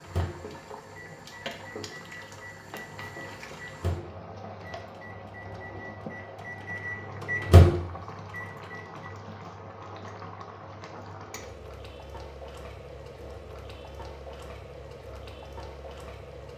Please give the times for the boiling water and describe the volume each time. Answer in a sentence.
The boiling water can be heard from 0.0 to 16.5 s, at a steady volume.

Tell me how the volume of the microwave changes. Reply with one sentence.
The volume of the microwave goes up.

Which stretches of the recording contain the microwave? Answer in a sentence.
You can hear the microwave from 0.0 to 9.1 s.